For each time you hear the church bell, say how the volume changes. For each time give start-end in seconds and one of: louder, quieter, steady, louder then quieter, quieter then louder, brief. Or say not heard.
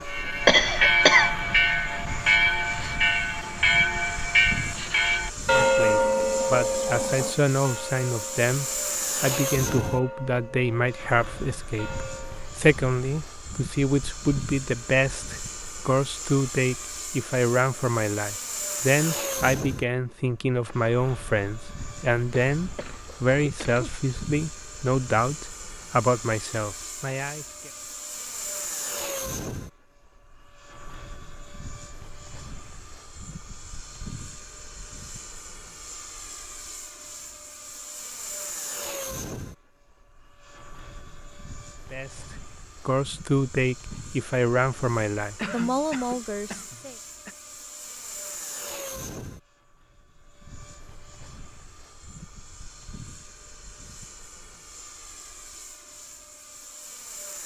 0.1-12.6 quieter.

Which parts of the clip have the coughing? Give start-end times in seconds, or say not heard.
0.5-1.3, 22.6-23.9, 45.4-47.4.